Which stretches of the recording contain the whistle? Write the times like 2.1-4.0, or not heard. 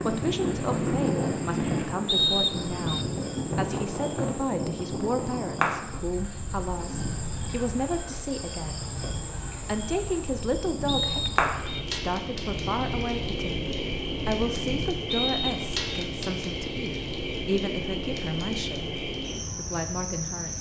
2.0-3.0, 10.8-11.8, 15.1-16.1.